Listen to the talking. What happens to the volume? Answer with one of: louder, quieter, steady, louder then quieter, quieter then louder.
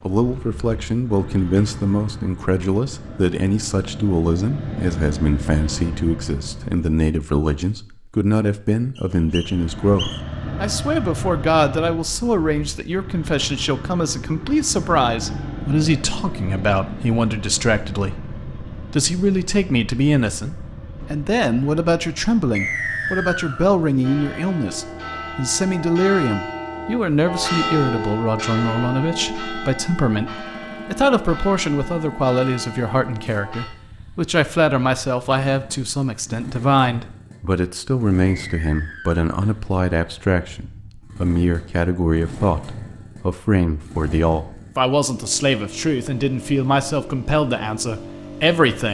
steady.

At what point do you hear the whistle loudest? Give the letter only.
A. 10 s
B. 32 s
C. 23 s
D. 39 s
C.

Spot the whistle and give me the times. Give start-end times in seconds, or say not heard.
8.9-10.2, 22.6-23.6, 38.3-39.2.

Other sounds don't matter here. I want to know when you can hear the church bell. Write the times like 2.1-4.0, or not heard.
24.0-33.7.